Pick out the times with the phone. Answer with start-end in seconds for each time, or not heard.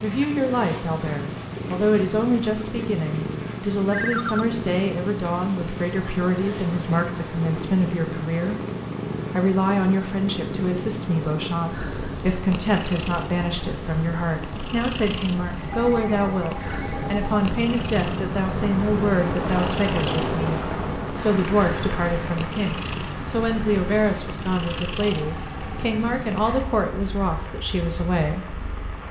3.9-4.5, 15.7-17.2, 25.1-25.8.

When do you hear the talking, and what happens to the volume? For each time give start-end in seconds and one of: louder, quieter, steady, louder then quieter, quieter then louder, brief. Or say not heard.
0.0-8.6 steady
9.3-28.6 steady.